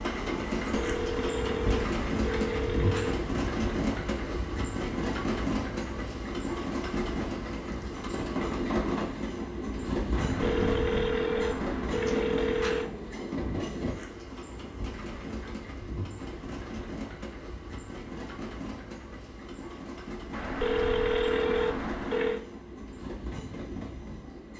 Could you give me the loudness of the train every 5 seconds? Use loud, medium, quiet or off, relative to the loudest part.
loud, loud, loud, medium, medium.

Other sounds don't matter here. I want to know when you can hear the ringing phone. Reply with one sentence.
You can hear the ringing phone from 0.7 to 3.2 s, from 10.2 to 12.9 s and from 20.3 to 22.4 s.